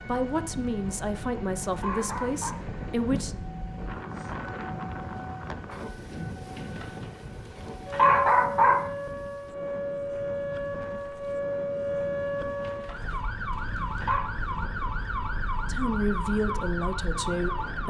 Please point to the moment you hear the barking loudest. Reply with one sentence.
The volume of the barking peaks at 8 seconds.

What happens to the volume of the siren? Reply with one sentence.
The volume of the siren goes up.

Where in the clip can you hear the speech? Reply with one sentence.
The speech can be heard from 0.1 to 3.4 s and from 15.7 to 17.8 s.